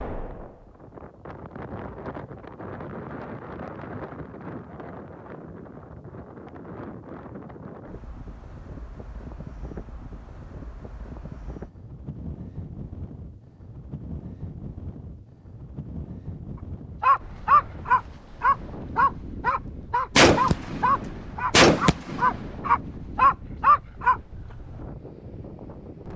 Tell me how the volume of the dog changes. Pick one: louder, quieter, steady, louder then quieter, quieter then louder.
quieter then louder.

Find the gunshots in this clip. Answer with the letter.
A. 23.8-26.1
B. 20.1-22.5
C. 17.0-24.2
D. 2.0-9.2
B.